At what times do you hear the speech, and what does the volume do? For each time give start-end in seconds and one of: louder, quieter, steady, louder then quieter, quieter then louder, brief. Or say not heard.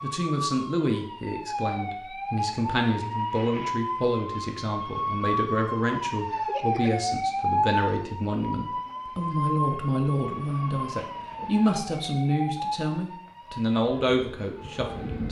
0.0-15.2 steady.